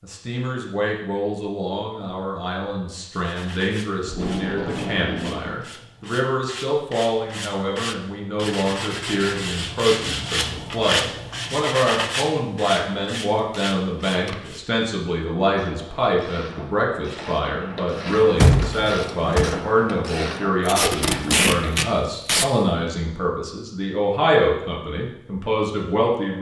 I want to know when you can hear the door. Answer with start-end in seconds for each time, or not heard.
18.4-19.4.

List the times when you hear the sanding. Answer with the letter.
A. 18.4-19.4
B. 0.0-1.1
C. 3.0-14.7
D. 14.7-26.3
C.